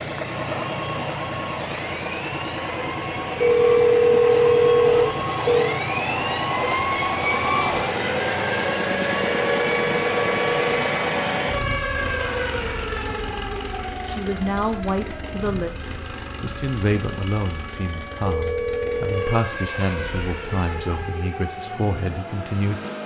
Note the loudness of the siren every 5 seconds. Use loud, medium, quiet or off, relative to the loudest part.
medium, loud, loud, medium, medium.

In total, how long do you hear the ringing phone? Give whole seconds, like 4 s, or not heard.
5 s.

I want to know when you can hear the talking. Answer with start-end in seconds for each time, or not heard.
14.1-22.8.